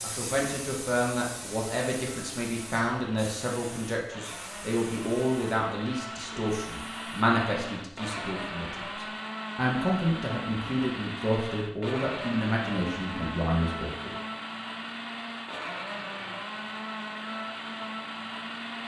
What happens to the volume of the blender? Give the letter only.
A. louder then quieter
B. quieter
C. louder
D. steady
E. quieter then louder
C.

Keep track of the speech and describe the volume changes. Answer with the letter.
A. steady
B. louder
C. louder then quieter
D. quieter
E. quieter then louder
A.